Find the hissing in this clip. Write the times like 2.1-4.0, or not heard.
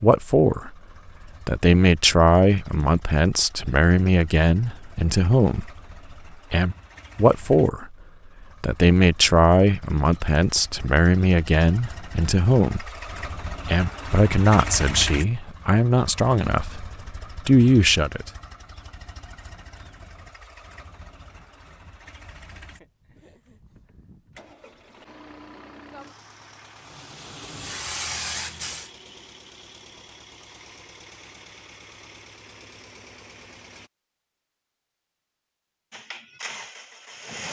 26.7-28.9.